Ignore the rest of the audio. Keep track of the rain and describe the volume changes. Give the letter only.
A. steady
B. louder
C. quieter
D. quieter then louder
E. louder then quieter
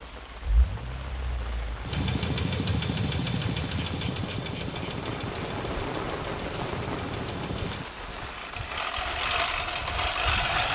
E.